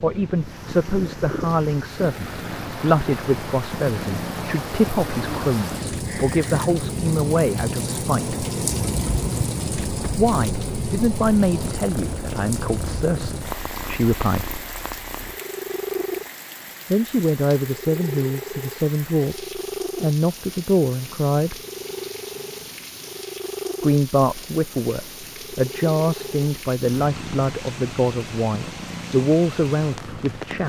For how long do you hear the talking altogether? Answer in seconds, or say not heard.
24 s.